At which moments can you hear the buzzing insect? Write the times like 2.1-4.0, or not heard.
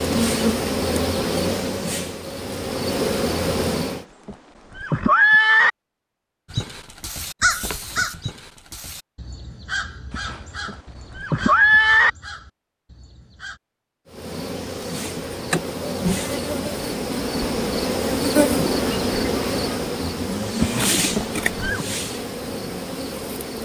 0.0-4.0, 14.1-23.6.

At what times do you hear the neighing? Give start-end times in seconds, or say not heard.
4.0-5.7, 10.1-12.1, 20.6-21.9.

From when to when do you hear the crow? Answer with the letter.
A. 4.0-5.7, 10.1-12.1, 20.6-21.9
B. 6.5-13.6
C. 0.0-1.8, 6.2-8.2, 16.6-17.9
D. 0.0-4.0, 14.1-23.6
B.